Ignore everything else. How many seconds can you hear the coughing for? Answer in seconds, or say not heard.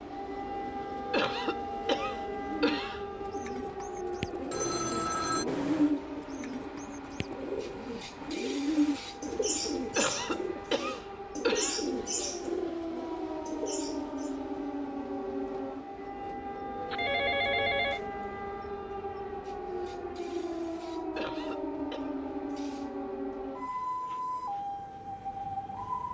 5 s.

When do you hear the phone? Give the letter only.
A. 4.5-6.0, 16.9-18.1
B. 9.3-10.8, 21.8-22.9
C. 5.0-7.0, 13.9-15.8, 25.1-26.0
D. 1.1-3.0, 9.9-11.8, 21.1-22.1
A.